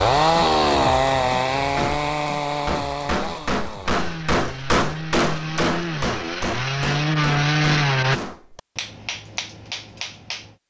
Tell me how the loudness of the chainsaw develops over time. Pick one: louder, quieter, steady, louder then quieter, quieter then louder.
quieter then louder.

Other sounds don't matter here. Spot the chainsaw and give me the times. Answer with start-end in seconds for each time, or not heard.
0.0-8.2.